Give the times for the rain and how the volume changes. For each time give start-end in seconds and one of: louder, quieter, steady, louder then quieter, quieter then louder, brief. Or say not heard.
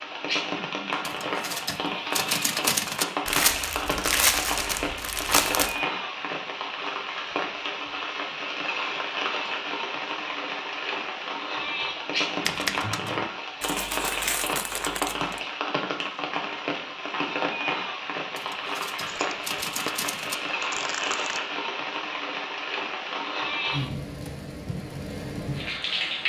0.0-26.2 steady.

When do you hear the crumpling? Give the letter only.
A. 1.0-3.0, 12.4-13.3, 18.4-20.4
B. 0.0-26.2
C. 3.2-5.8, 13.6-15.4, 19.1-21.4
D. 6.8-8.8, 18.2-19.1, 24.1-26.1
C.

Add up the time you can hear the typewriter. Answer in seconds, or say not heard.
5 s.